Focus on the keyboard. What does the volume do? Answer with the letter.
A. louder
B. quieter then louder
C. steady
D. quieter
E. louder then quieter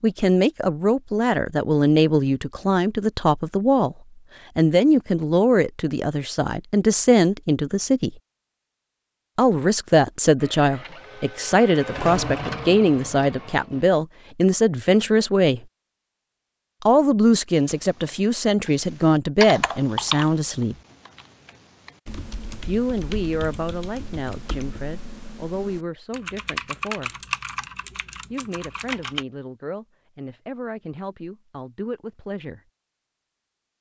B.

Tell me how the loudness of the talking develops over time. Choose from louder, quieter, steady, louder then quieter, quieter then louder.
quieter.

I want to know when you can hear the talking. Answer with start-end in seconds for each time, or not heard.
0.0-4.0, 4.5-8.2, 9.3-15.6, 16.8-20.8, 22.6-27.1, 28.3-32.6.